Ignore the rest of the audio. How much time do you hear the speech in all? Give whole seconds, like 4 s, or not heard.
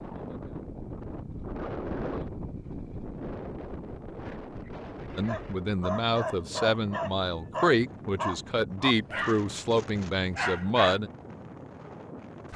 6 s.